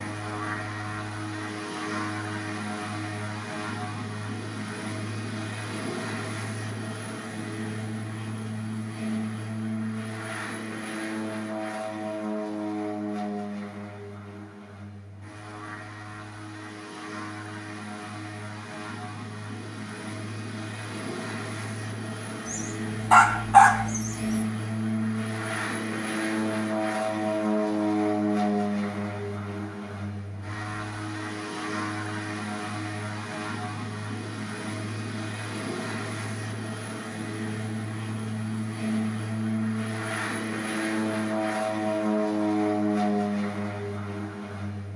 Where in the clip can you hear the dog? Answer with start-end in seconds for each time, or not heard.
22.4-24.4.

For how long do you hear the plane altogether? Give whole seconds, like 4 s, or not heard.
45 s.